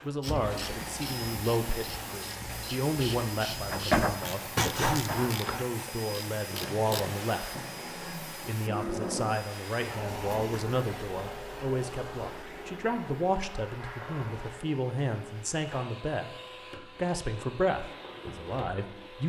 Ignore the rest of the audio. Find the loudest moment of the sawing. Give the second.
4 s.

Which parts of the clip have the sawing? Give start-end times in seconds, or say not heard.
3.7-5.7.